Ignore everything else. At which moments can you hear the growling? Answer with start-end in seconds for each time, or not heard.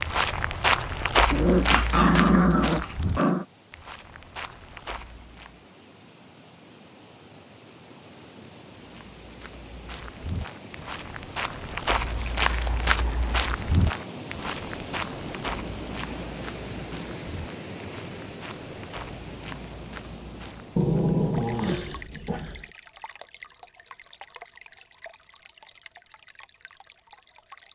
1.3-3.5, 12.1-13.3, 20.8-22.6.